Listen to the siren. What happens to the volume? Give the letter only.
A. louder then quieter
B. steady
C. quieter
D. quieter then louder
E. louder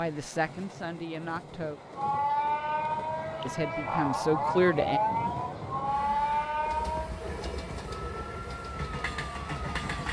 C.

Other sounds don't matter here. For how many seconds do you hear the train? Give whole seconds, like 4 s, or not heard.
10 s.